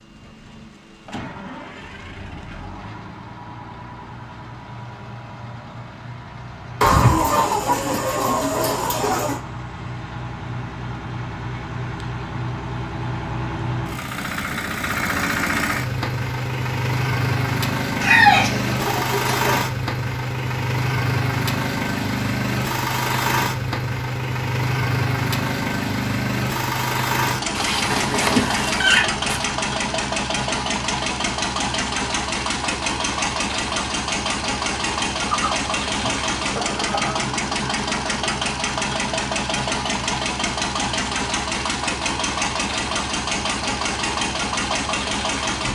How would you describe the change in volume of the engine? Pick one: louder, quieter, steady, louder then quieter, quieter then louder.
louder.